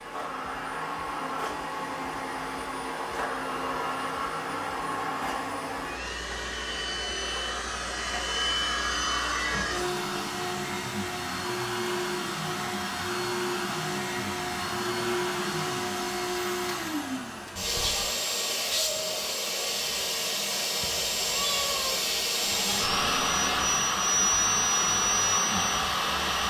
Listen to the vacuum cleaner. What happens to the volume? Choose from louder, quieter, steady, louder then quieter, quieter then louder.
louder.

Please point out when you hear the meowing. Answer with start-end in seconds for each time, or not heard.
20.8-21.9.